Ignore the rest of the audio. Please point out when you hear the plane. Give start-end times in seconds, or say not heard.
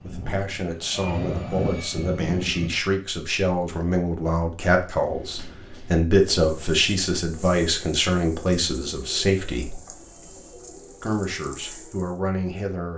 0.0-2.7.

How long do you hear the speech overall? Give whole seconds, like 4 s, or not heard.
12 s.